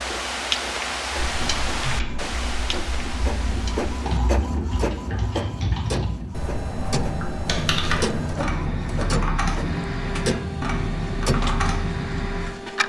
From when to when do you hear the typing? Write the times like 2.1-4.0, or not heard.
1.1-12.6.